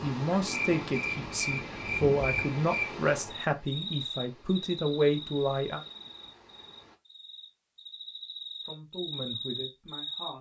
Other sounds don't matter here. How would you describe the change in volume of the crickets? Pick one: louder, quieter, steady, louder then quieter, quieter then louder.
quieter then louder.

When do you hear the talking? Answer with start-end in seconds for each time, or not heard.
0.0-5.8, 8.6-10.3.